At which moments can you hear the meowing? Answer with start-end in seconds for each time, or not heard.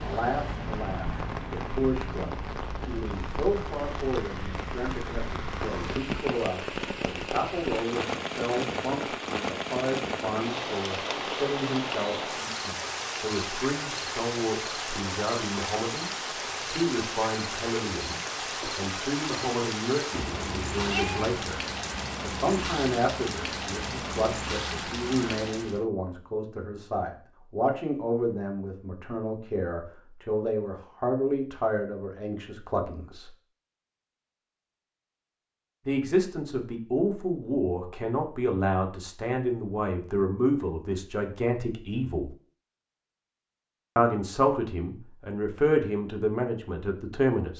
20.1-21.4.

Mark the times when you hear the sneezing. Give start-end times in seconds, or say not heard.
not heard.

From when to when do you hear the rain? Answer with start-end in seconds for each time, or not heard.
0.0-25.9.